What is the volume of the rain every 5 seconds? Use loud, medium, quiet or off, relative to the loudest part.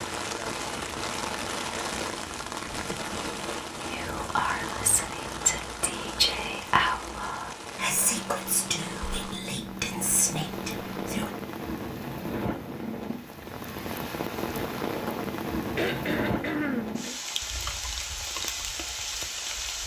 loud, medium, loud, loud.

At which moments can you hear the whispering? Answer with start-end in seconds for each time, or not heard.
3.9-11.3.